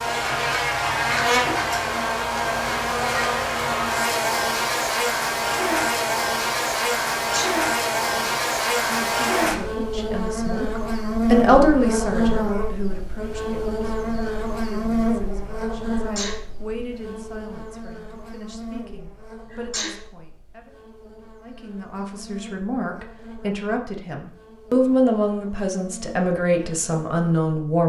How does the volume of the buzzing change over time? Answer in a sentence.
The volume of the buzzing goes down.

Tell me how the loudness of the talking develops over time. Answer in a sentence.
The loudness of the talking goes down, then up.